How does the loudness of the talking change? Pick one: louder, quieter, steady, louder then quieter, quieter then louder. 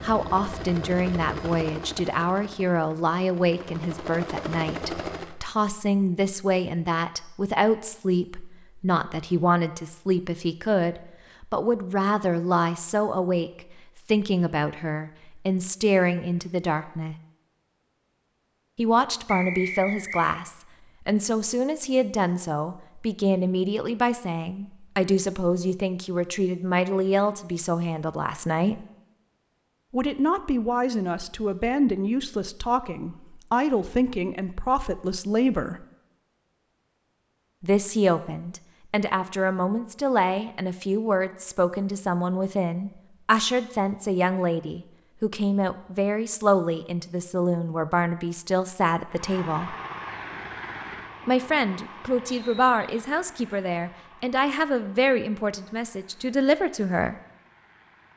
steady.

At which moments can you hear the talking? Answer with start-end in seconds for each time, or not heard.
0.0-17.1, 18.8-28.9, 29.9-35.9, 37.6-49.8, 51.2-57.1.